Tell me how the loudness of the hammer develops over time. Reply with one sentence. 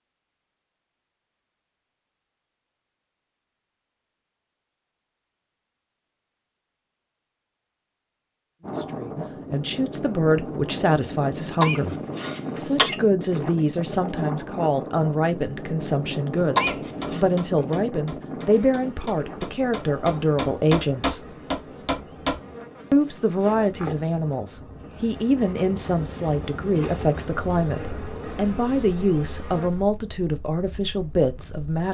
The volume of the hammer goes down, then up.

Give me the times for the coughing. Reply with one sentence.
You can hear the coughing from 11.6 to 12.9 s and from 16.6 to 17.2 s.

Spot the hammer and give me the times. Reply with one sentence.
You can hear the hammer from 16.4 to 22.4 s.